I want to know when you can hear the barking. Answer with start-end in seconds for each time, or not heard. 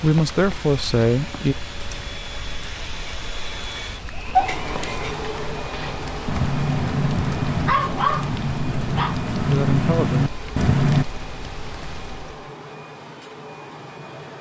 4.3-11.1.